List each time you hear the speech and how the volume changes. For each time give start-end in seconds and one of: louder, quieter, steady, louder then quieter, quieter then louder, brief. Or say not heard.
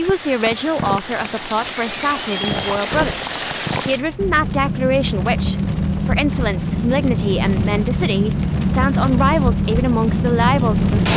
0.0-11.1 steady.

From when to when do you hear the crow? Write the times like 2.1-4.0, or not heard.
not heard.